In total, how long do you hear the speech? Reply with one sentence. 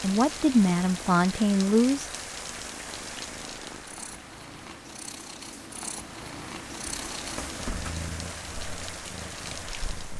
The speech can be heard for 2 seconds in total.